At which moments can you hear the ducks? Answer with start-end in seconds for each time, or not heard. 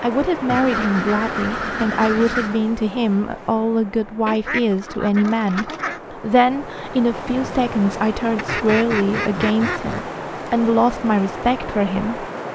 0.5-2.6, 4.2-6.0, 8.3-10.1.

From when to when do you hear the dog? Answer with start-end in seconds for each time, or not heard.
not heard.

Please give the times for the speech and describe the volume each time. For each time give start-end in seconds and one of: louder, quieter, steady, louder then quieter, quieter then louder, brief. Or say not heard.
0.0-12.3 steady.